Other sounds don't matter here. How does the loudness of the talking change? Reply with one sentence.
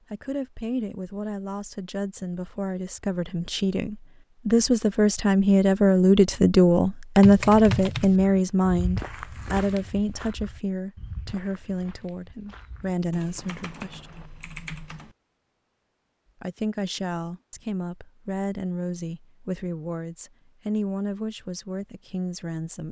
The volume of the talking goes up, then down.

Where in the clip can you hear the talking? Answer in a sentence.
You can hear the talking from 0.1 to 14.1 s and from 16.4 to 22.8 s.